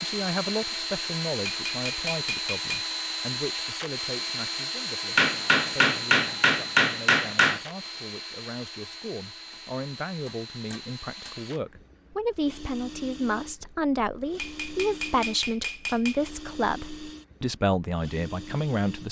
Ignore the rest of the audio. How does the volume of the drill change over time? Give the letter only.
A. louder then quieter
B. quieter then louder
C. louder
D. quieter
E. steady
D.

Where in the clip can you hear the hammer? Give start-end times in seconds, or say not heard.
1.4-3.0, 5.2-7.6, 10.2-11.3, 14.3-16.3.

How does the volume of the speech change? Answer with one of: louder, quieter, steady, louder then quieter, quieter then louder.
quieter then louder.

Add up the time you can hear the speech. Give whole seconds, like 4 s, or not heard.
19 s.